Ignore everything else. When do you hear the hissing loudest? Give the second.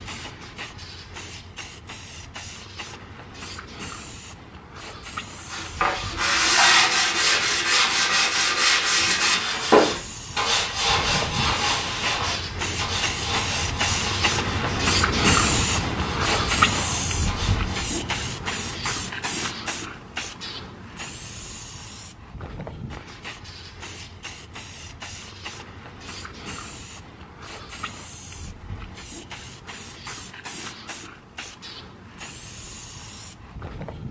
15 s.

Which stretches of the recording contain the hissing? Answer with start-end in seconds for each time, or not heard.
0.0-34.0.